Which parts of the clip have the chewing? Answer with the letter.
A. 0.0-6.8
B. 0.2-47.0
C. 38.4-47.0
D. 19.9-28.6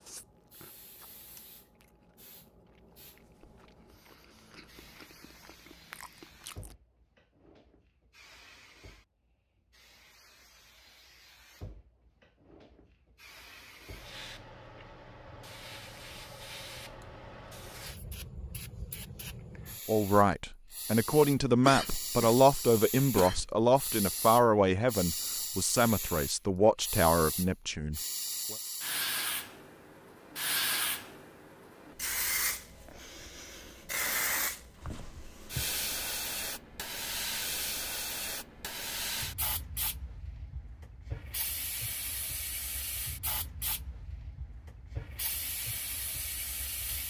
A.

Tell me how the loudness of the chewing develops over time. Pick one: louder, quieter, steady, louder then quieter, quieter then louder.
quieter then louder.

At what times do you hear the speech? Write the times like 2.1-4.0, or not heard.
19.9-28.6.